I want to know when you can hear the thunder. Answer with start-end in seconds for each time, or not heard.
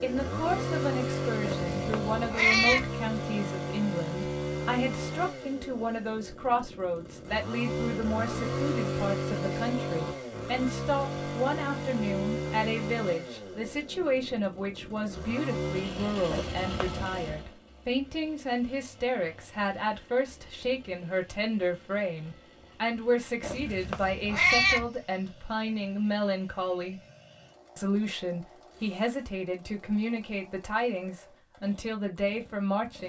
not heard.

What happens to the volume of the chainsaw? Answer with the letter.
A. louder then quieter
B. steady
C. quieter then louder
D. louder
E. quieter
E.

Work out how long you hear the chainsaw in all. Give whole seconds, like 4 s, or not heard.
33 s.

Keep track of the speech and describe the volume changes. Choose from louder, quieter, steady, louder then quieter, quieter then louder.
steady.